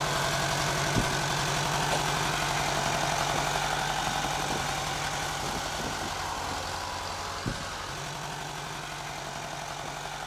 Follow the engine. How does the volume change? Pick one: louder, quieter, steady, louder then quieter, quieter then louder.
quieter.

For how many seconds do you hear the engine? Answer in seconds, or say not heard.
10 s.